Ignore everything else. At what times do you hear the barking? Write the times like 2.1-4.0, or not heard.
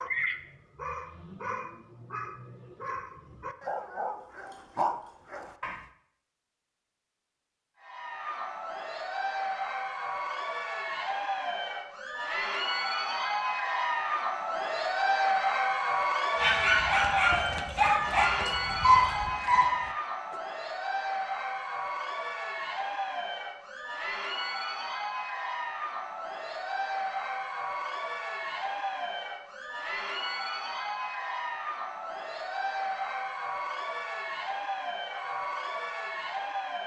0.0-5.8, 16.4-20.4.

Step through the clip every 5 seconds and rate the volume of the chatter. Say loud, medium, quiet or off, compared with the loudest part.
off, medium, loud, loud, medium, medium, medium, medium.